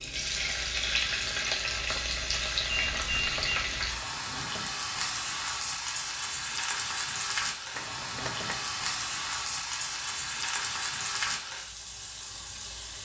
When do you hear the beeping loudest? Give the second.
3 s.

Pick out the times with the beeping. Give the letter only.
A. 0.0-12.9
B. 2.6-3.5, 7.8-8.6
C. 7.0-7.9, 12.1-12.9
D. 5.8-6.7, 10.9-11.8
B.